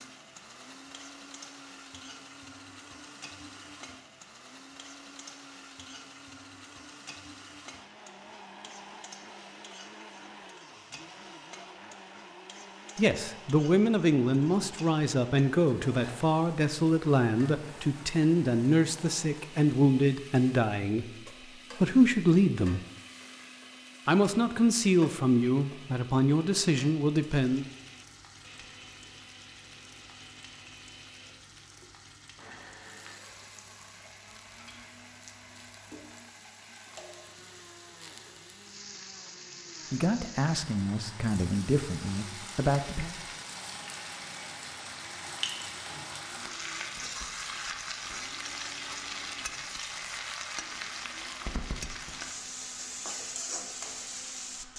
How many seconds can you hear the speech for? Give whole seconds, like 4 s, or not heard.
17 s.